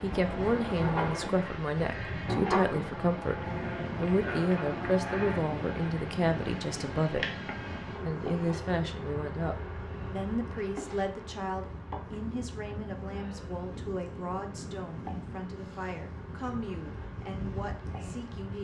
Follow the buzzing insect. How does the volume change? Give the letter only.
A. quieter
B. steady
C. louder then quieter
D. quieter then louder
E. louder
A.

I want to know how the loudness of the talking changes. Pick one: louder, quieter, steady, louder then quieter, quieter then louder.
quieter.